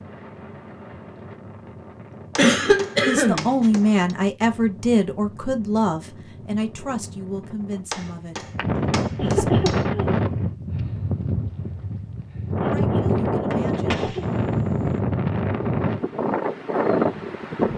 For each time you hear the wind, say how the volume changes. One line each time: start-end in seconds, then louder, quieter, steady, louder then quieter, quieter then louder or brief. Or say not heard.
0.0-17.7 louder.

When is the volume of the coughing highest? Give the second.
3 s.